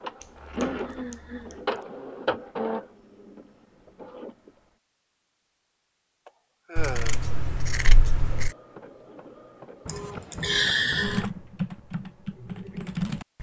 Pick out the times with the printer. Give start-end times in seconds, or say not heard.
0.0-4.5, 8.3-11.2.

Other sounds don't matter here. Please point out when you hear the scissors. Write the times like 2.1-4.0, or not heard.
0.2-1.6, 6.8-8.5.